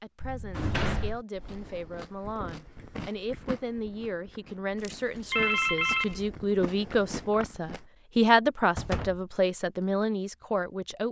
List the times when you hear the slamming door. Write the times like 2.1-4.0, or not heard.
0.2-1.2, 8.8-9.2.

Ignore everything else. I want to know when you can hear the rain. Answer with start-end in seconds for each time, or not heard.
not heard.